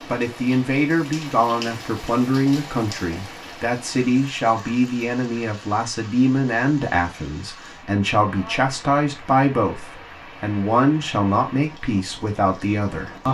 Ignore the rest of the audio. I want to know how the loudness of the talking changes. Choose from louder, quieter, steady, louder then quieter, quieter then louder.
steady.